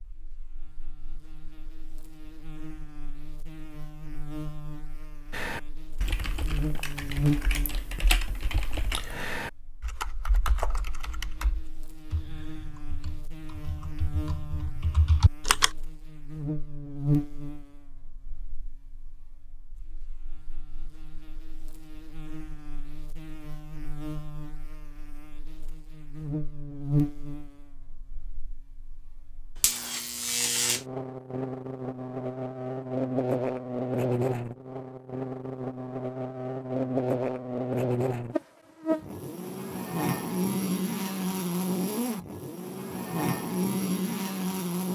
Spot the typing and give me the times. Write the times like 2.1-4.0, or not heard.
5.3-15.7.